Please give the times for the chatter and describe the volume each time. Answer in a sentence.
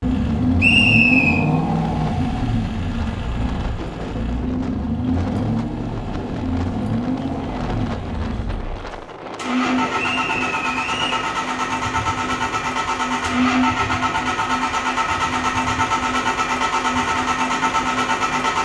The chatter can't be heard in this clip.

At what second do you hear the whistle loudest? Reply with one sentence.
The volume of the whistle peaks at 1 second.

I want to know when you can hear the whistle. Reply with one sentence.
The whistle can be heard from 0.6 to 1.4 s and from 9.9 to 11.2 s.